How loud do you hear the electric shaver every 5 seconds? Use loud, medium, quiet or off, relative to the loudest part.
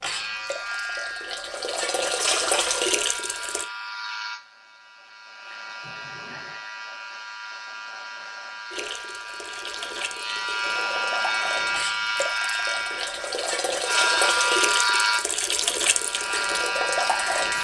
medium, quiet, loud, loud.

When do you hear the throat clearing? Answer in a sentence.
You can hear the throat clearing from 5.8 to 6.6 s.